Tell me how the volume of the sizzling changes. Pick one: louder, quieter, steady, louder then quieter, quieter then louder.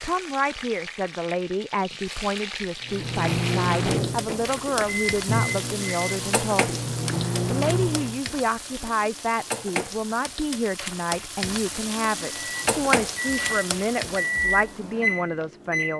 louder.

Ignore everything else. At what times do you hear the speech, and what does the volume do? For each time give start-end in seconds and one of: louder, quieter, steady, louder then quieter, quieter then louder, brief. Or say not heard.
0.0-15.9 steady.